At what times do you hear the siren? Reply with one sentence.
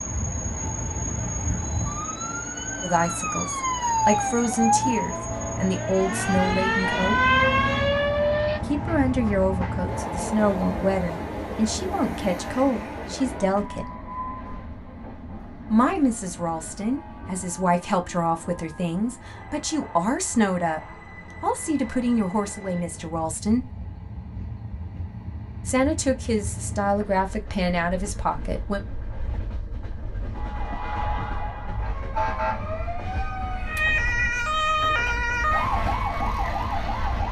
You can hear the siren from 0.0 to 8.6 s and from 30.3 to 37.2 s.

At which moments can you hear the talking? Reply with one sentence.
The talking can be heard from 2.8 to 7.2 s, from 8.7 to 13.8 s, from 15.7 to 20.8 s, from 21.4 to 23.7 s and from 25.6 to 28.8 s.